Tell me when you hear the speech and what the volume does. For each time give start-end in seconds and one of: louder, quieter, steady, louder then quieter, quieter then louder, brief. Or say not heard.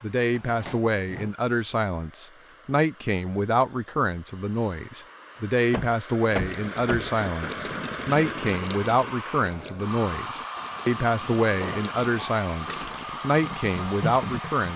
0.0-14.7 steady.